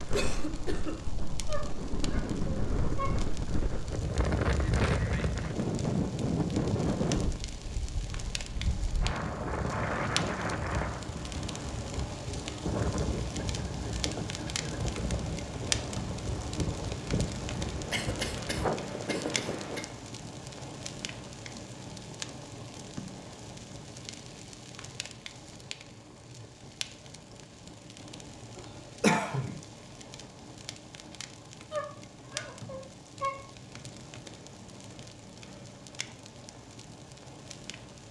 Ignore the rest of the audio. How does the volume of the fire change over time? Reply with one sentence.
The loudness of the fire goes up, then down.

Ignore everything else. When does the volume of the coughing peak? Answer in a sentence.
The volume of the coughing peaks at 29 seconds.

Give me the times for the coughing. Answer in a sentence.
The coughing can be heard from 0.1 to 0.9 s, from 17.9 to 19.9 s and from 28.6 to 29.6 s.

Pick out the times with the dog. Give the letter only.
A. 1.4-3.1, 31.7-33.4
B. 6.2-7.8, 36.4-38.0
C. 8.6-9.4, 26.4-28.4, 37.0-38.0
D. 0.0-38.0
A.